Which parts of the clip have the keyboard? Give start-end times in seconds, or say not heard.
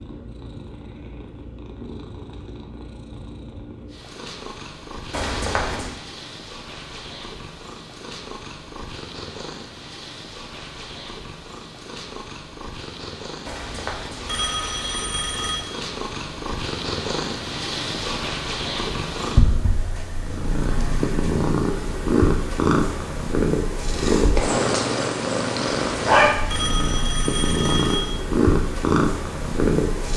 not heard.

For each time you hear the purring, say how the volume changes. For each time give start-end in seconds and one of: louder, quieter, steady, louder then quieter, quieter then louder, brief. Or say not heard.
0.0-30.1 louder.